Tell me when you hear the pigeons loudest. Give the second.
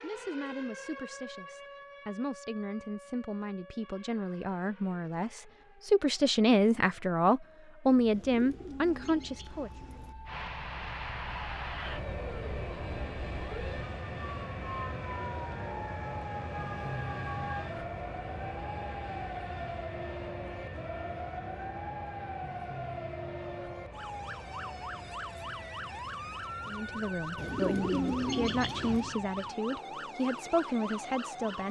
28 s.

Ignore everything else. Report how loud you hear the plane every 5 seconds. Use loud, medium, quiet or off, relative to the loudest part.
off, off, loud, loud, medium, medium, medium.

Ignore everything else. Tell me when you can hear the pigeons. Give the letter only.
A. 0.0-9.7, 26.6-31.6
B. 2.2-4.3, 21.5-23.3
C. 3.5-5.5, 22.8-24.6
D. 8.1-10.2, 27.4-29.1
D.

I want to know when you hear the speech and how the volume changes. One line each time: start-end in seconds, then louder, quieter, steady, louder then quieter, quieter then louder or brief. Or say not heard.
0.0-9.7 louder
26.6-31.6 steady.